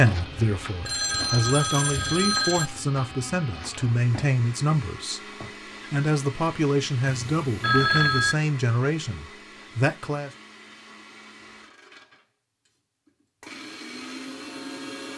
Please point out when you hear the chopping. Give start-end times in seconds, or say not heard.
not heard.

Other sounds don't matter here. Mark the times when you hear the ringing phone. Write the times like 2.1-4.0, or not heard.
0.8-2.7, 7.3-8.3.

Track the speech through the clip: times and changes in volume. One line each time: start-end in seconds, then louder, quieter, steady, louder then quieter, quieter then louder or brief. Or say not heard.
0.0-10.3 steady.